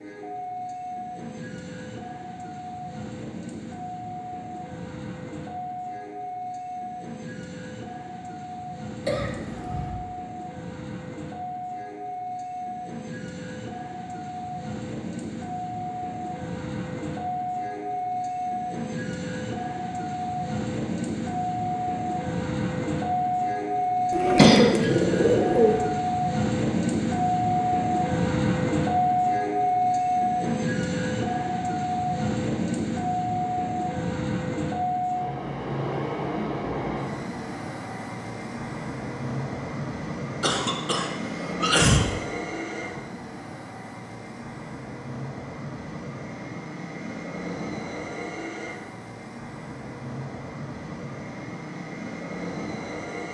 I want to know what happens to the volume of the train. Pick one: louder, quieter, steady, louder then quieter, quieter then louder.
louder then quieter.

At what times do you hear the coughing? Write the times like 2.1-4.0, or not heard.
9.1-9.9, 24.4-24.9, 40.4-42.0.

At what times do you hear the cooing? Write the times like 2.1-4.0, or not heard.
24.1-25.9.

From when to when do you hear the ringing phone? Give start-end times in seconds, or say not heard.
not heard.